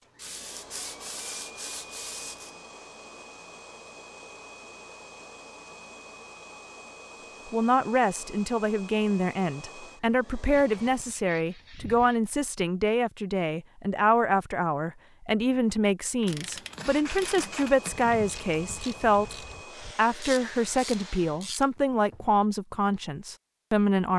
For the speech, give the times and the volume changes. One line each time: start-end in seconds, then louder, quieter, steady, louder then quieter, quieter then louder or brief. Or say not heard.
7.5-24.1 steady.